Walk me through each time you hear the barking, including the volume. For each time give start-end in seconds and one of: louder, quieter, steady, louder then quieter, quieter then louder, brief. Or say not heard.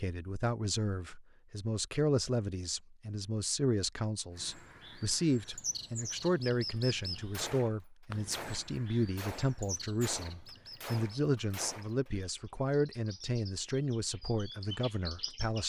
not heard.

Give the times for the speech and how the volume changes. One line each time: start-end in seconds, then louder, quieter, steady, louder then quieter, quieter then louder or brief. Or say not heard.
0.0-15.6 steady.